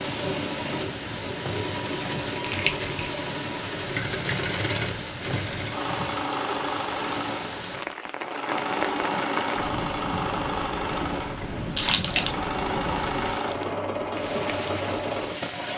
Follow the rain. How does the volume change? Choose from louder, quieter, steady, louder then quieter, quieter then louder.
steady.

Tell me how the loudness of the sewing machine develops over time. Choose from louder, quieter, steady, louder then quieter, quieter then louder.
steady.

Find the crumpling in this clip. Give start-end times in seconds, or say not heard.
2.4-3.1, 11.8-12.3.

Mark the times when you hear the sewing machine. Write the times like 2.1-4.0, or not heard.
0.0-15.7.